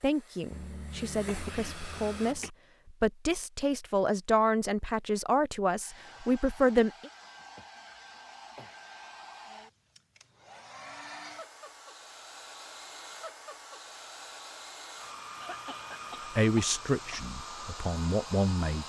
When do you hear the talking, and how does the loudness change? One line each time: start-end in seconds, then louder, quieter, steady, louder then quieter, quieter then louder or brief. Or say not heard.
0.0-7.1 louder
16.4-18.8 brief.